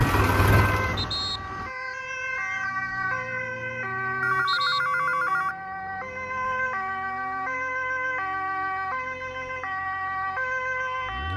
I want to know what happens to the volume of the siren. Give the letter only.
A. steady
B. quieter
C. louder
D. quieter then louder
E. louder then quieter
A.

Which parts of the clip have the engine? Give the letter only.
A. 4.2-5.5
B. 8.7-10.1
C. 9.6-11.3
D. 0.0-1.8
D.